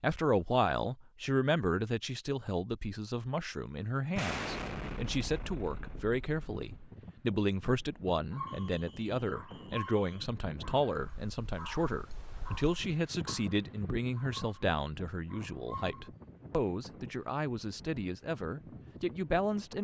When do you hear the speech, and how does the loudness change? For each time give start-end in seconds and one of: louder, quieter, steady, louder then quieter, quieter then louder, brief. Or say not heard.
0.0-19.7 steady.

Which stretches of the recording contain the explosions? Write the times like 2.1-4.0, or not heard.
4.1-6.9.